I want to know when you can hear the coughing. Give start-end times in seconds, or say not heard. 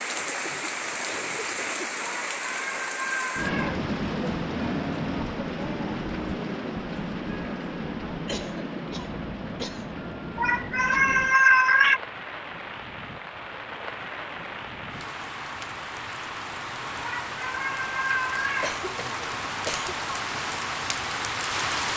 0.1-2.0, 8.2-9.9, 18.6-19.9.